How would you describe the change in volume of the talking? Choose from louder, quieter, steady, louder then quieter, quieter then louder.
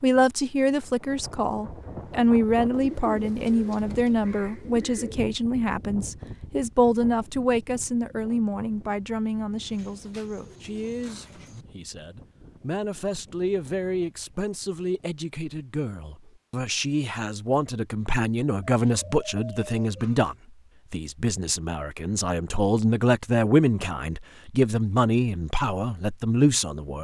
quieter then louder.